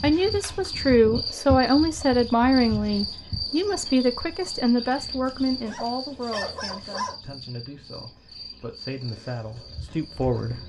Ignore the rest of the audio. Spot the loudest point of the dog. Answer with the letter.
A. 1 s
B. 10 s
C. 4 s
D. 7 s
D.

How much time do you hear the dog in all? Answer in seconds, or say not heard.
2 s.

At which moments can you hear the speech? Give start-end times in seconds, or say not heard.
0.0-10.6.